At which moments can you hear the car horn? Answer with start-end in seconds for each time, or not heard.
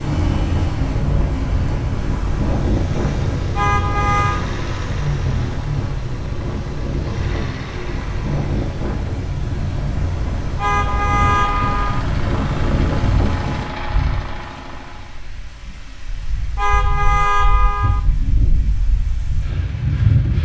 3.5-4.5, 10.6-12.1, 16.6-18.0.